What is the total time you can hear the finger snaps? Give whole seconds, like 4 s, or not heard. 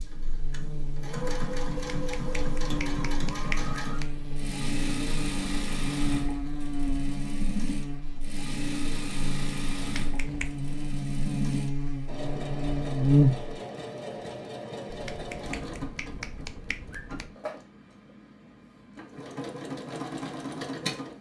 6 s.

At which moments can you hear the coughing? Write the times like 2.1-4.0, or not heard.
not heard.